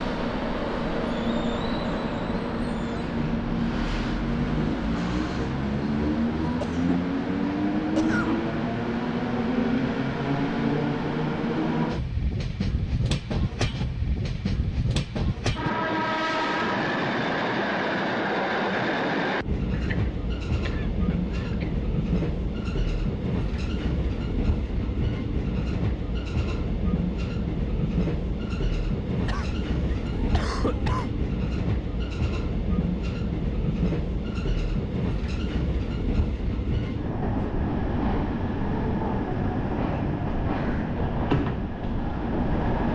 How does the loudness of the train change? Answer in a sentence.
The loudness of the train stays about the same.